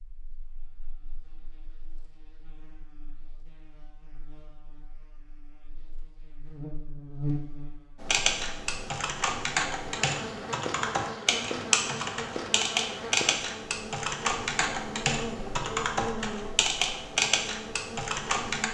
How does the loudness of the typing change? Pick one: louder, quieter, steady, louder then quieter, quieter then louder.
steady.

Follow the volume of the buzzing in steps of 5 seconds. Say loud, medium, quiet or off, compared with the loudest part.
quiet, loud, loud, loud.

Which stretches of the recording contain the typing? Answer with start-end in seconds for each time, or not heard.
8.0-18.6.